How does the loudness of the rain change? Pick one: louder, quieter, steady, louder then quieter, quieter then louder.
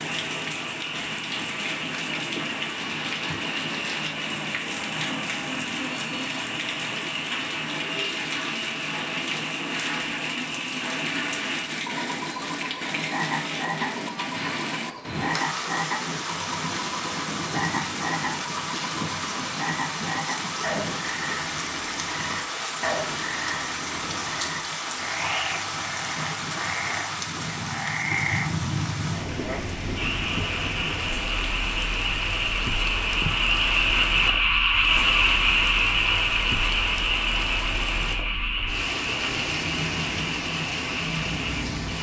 steady.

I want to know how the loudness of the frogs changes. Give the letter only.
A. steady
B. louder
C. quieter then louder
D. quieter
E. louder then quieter
B.